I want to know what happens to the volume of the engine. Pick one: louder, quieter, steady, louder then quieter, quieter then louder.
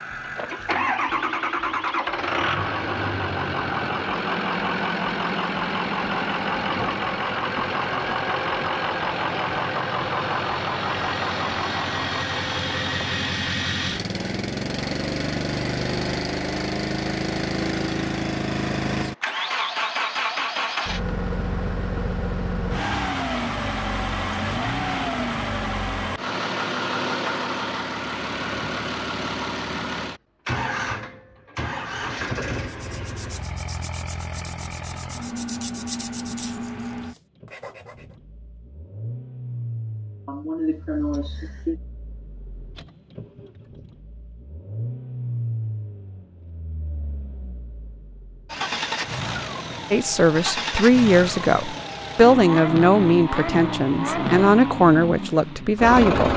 quieter then louder.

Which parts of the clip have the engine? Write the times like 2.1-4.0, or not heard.
0.0-56.3.